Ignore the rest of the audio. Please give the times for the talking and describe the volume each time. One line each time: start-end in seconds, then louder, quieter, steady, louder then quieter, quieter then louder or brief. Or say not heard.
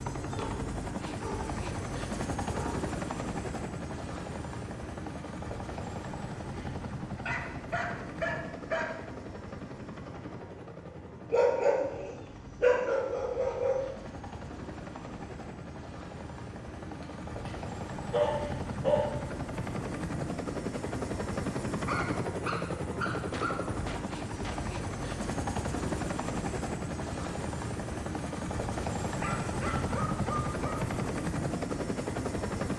not heard.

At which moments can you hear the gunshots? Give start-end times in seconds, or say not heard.
23.3-24.6.